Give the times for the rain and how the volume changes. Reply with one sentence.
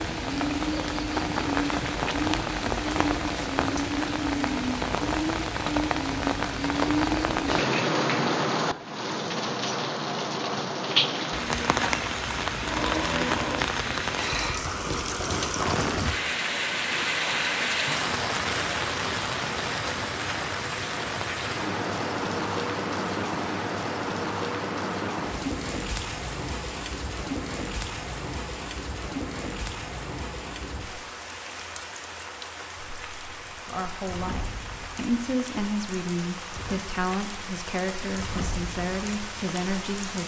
The rain can be heard from 0.0 to 40.2 s, getting quieter.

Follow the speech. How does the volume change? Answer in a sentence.
The volume of the speech stays about the same.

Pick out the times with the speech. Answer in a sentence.
You can hear the speech from 33.6 to 40.2 s.